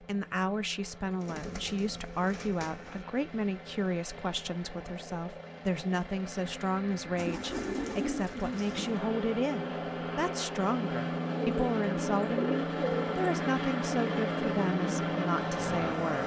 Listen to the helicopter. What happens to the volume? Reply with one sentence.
The loudness of the helicopter goes up.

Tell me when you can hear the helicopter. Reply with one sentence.
The helicopter can be heard from 0.0 to 16.2 s.